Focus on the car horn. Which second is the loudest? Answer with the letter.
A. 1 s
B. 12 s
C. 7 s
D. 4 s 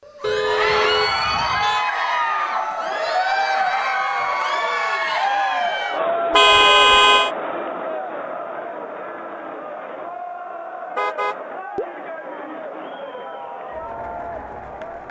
C.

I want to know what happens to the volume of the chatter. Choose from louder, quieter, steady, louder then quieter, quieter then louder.
quieter.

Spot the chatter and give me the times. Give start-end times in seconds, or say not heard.
0.0-15.0.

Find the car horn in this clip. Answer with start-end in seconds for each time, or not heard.
0.2-1.9, 6.3-7.3, 10.9-11.9.